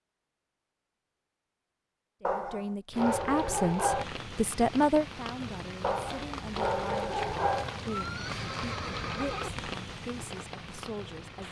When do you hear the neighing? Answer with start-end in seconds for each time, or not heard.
7.8-9.5.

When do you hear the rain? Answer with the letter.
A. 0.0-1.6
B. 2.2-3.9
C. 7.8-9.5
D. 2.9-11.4
D.